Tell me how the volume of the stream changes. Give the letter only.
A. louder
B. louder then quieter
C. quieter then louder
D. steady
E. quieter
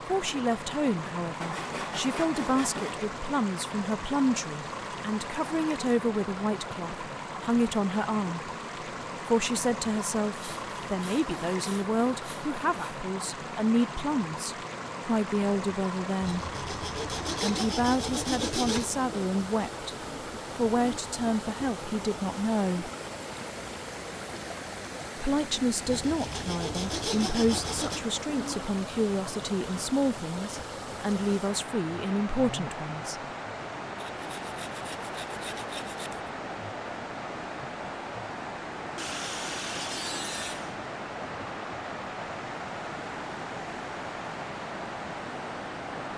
D.